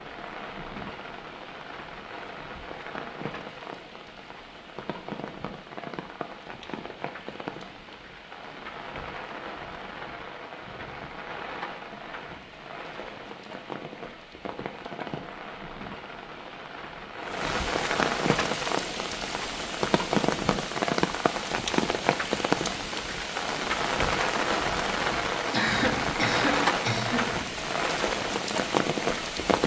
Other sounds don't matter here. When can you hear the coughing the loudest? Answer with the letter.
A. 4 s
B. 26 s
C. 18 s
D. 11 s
B.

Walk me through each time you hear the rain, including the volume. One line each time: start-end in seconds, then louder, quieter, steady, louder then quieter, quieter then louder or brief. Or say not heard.
0.0-29.6 louder.